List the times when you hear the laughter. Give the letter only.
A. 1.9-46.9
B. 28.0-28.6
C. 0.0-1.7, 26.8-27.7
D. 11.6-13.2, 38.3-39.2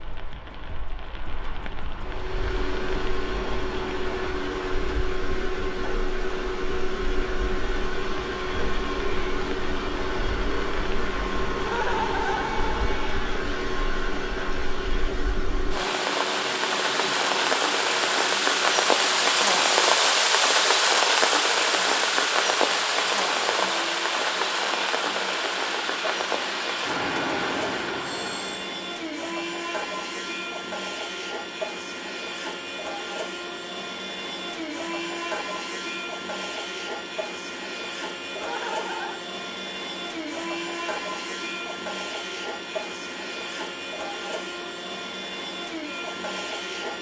D.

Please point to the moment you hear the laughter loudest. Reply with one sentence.
The loudest moment of the laughter is at 12 seconds.